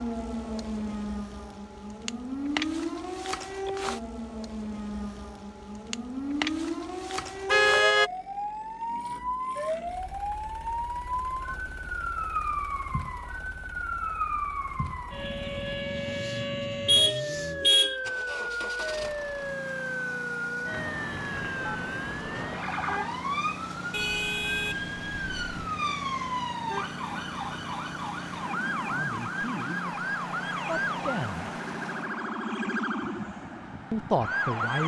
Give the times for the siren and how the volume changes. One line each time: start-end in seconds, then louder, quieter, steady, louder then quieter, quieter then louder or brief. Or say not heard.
0.0-34.8 steady.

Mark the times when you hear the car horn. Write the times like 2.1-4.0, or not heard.
7.5-8.1, 16.9-18.0, 23.9-25.7.